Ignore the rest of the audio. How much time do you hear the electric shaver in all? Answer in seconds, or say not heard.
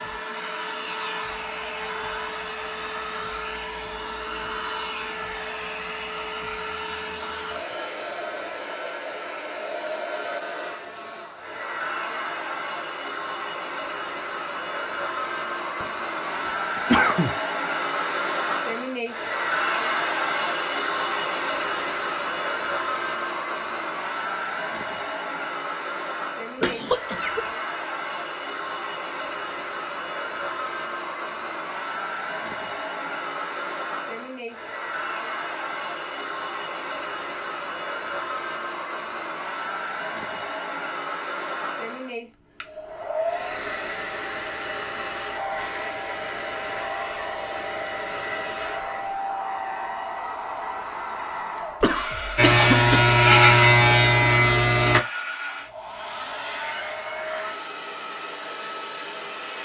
3 s.